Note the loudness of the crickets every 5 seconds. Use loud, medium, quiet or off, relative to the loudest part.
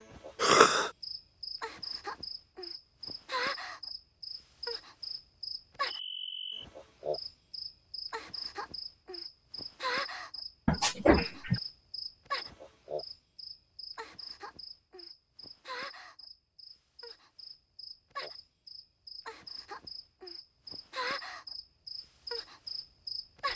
loud, loud, loud, medium, loud.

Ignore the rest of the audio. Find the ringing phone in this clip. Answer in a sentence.
You can hear the ringing phone from 10.7 to 11.6 s.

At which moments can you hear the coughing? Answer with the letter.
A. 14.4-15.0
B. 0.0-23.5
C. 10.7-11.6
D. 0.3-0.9
D.